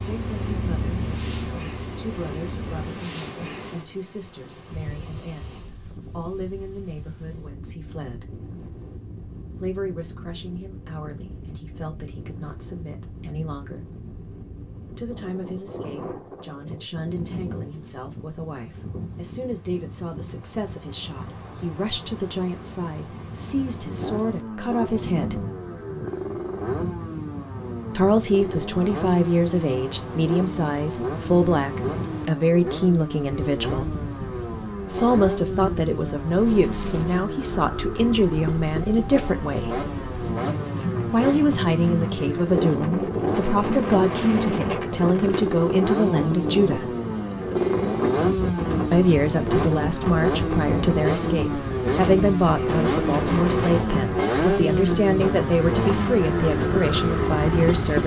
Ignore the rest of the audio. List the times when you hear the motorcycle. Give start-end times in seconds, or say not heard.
0.0-3.0, 23.8-58.0.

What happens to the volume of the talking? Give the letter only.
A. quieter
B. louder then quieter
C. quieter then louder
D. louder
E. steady
D.